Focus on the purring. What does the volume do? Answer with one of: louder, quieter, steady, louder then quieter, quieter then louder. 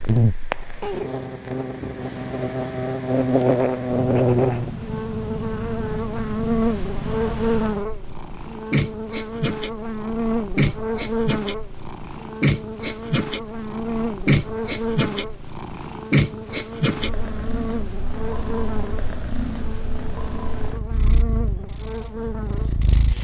louder then quieter.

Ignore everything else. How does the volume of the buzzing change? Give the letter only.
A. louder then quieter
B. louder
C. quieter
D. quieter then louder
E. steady
C.